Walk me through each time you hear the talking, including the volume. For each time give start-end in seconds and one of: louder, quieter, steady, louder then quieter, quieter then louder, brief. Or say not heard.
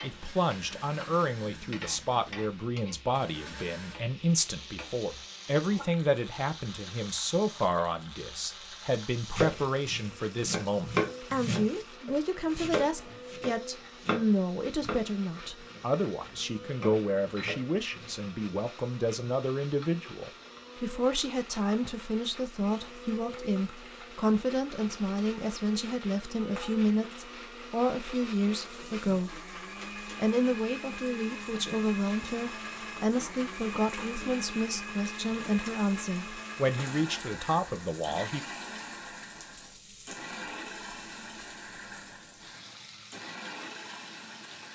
0.0-29.4 steady
30.1-38.4 steady.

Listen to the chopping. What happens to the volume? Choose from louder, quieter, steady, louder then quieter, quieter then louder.
quieter.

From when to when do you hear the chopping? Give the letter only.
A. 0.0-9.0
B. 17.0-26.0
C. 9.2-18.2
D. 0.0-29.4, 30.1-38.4
C.